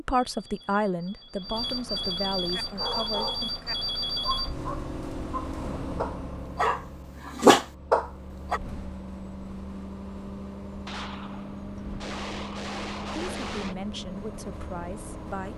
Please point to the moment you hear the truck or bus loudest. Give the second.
4 s.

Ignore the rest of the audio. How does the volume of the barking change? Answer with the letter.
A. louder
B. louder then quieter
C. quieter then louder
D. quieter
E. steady
A.